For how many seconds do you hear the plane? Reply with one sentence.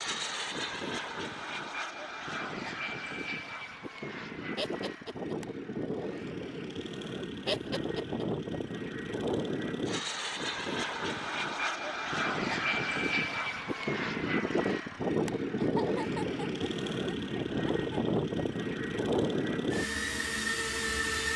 You can hear the plane for 21 seconds altogether.